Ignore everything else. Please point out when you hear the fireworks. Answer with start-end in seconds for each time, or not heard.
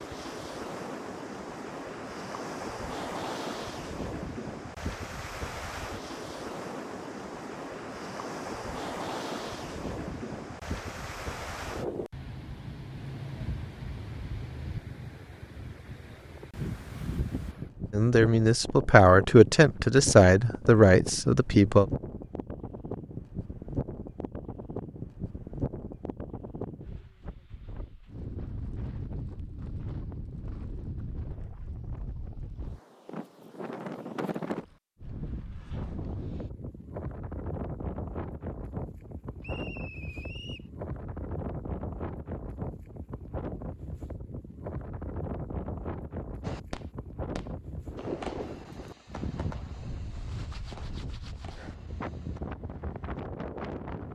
46.4-52.4.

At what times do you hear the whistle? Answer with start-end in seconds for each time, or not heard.
39.4-40.7.